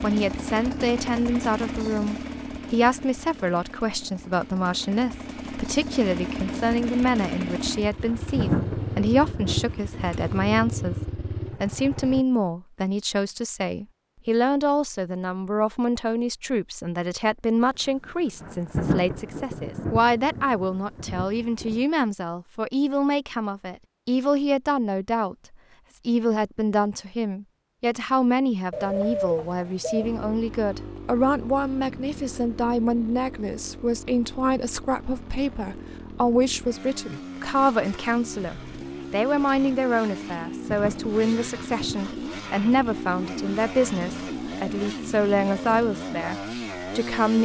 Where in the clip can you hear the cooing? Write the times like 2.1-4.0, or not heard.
28.7-30.3.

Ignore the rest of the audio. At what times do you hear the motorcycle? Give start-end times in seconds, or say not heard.
0.0-12.2, 30.0-47.4.